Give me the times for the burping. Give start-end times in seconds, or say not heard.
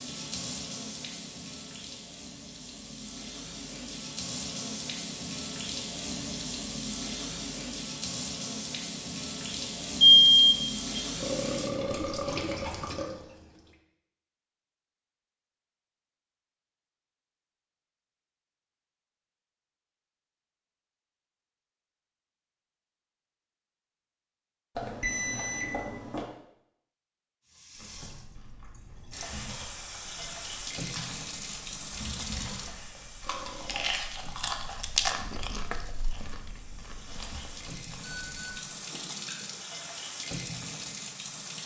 11.2-13.2, 33.2-34.0.